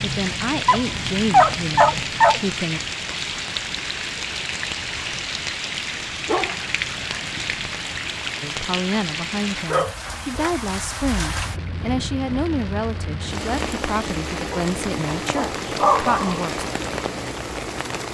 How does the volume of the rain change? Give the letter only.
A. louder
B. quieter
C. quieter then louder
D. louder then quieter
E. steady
E.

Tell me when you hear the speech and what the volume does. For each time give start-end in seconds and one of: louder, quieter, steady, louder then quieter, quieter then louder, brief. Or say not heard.
0.0-2.8 brief
8.4-16.6 steady.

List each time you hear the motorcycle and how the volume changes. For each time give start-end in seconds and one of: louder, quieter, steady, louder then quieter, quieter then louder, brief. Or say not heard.
not heard.